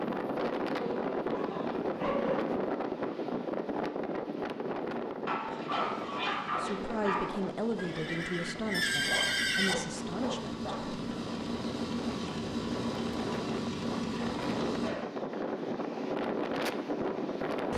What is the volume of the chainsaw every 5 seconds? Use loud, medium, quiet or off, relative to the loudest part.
off, medium, loud, off.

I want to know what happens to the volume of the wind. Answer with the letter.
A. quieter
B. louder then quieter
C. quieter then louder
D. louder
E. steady
C.